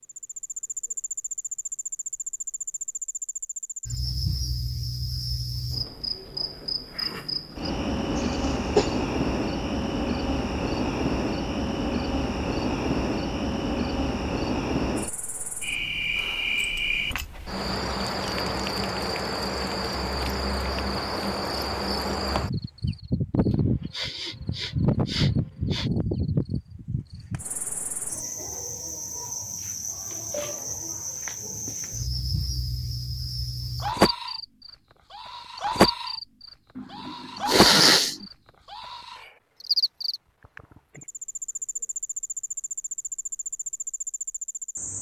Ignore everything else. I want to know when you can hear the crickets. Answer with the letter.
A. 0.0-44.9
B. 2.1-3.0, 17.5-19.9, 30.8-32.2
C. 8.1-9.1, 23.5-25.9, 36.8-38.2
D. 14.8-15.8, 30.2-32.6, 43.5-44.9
A.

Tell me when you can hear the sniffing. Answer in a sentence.
You can hear the sniffing from 8.1 to 9.1 s, from 23.5 to 25.9 s and from 36.8 to 38.2 s.